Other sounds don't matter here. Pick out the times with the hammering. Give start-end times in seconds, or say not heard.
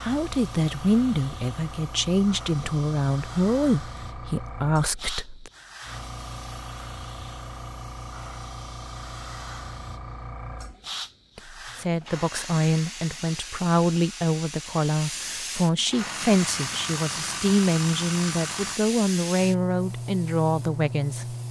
not heard.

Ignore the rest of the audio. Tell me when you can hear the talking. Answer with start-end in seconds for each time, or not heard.
0.0-5.5, 11.3-21.4.